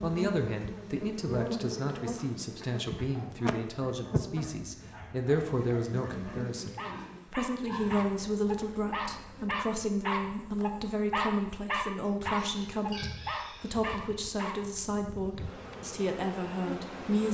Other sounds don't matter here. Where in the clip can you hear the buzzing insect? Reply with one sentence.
You can hear the buzzing insect from 0.0 to 17.2 s.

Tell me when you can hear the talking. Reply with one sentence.
You can hear the talking from 0.0 to 17.2 s.